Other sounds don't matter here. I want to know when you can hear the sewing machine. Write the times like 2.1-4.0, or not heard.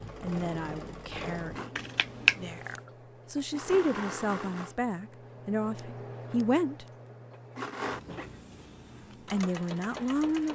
0.0-10.5.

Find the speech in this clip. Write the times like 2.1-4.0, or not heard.
0.2-6.8, 9.3-10.5.